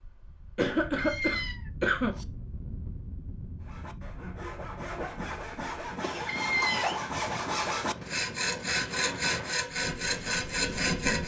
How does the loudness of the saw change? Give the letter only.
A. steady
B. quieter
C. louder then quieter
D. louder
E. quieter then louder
D.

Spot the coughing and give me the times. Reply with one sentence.
You can hear the coughing from 0.6 to 2.1 s and from 6.0 to 7.0 s.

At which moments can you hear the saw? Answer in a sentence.
The saw can be heard from 3.6 to 11.2 s.